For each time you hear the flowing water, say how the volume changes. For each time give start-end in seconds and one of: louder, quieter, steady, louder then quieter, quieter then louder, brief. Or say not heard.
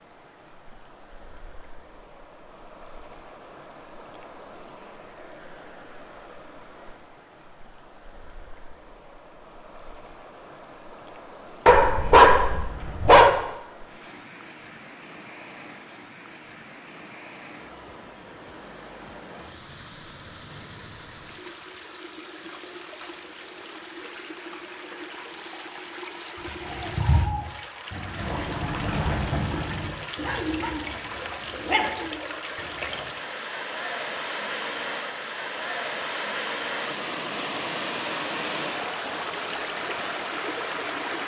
0.0-41.2 louder.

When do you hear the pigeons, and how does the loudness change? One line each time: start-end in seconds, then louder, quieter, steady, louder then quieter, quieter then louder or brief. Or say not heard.
26.4-33.1 quieter.